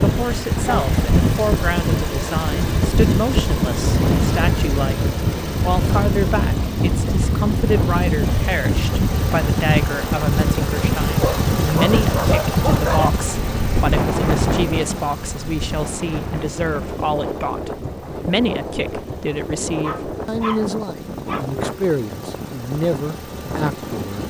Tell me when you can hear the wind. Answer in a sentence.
The wind can be heard from 0.0 to 24.2 s.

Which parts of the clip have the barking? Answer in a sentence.
The barking can be heard from 0.6 to 1.0 s, from 11.2 to 13.1 s and from 19.8 to 21.4 s.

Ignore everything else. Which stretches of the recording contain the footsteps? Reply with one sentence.
The footsteps can't be heard in this clip.